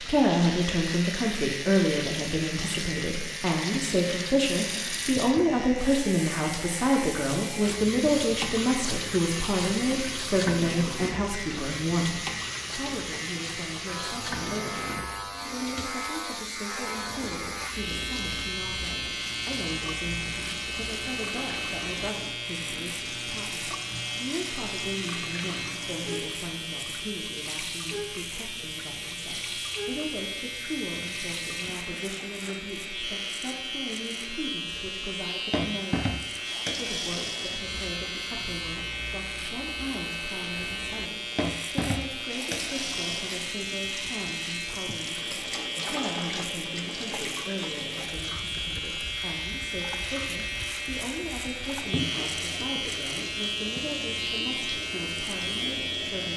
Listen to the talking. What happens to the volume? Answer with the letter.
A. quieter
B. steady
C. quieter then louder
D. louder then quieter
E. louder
A.